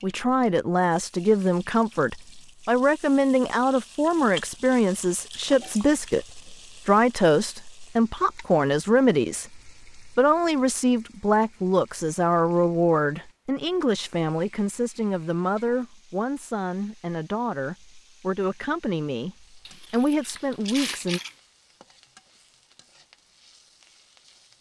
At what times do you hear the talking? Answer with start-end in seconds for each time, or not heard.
0.0-21.2.